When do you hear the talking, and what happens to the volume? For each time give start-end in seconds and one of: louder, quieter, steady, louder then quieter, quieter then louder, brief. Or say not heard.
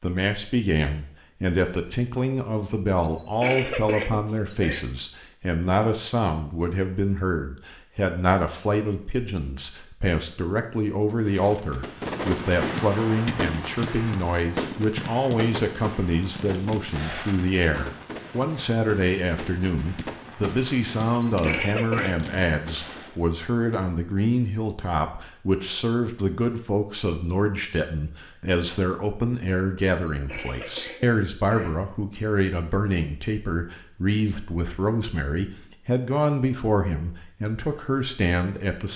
0.0-38.9 steady.